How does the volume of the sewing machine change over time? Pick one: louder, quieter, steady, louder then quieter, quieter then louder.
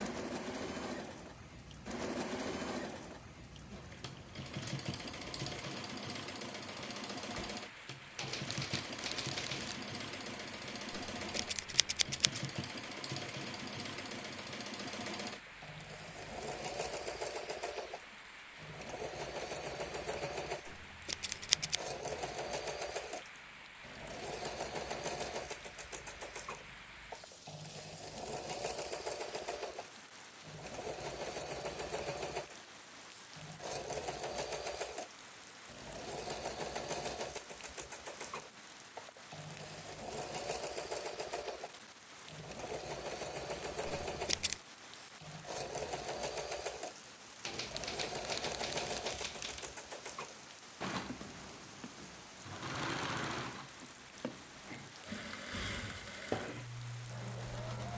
steady.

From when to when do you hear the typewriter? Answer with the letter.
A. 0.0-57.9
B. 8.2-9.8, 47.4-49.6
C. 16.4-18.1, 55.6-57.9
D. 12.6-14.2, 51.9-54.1
B.